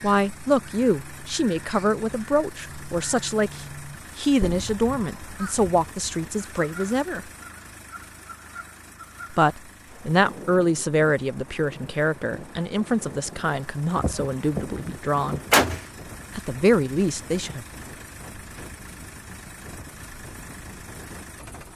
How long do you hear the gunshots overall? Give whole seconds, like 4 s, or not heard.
2 s.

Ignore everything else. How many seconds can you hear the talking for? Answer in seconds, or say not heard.
15 s.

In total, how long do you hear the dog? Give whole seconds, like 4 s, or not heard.
not heard.